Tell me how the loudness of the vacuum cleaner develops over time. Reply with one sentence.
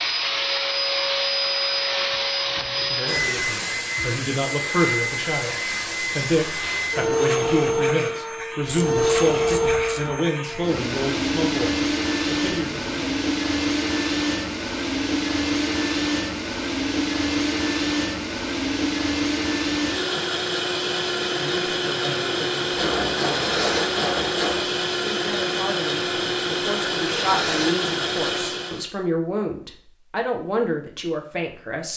The loudness of the vacuum cleaner stays about the same.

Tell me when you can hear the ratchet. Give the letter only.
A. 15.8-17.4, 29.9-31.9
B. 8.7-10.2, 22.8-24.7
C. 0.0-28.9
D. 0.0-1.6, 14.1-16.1
B.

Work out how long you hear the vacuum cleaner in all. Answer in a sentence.
The vacuum cleaner can be heard for 29 seconds in total.